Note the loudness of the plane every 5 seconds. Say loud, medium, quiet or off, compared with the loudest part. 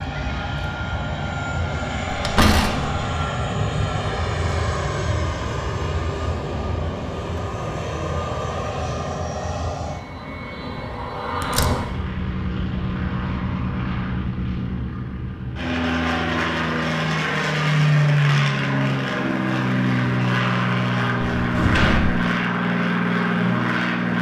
medium, medium, medium, loud, loud.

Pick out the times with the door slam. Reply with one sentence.
The door slam can be heard from 2.1 to 3.0 s, from 11.4 to 11.8 s and from 21.4 to 22.2 s.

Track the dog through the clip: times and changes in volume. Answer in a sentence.
You can't hear the dog here.